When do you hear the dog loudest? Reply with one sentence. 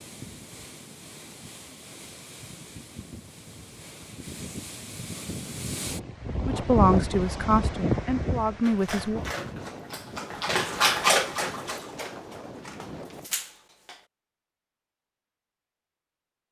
The volume of the dog peaks at 11 seconds.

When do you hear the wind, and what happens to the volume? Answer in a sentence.
You can hear the wind from 0.0 to 13.3 s, getting louder then quieter.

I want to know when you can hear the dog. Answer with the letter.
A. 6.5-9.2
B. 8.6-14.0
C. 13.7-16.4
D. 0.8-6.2
B.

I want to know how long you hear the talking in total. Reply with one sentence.
You can hear the talking for 3 seconds altogether.